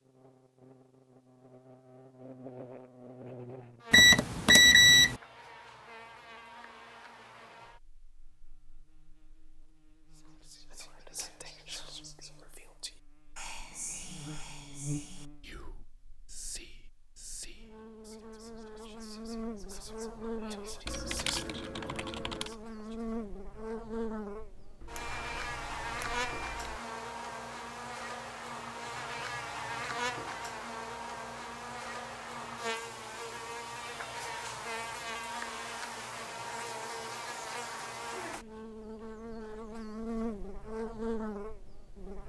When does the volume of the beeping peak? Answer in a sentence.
The loudest moment of the beeping is at 5 seconds.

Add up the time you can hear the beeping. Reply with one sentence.
You can hear the beeping for 3 seconds altogether.